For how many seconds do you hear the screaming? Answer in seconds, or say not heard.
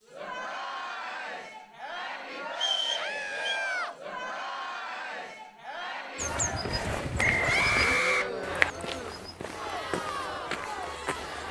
2 s.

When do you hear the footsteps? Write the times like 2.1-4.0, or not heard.
6.2-11.4.